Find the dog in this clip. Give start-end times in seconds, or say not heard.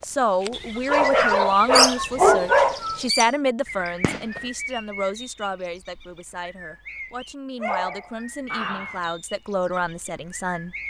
0.5-3.1, 7.6-9.0.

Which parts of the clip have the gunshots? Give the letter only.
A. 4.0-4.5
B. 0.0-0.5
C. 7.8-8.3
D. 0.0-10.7
A.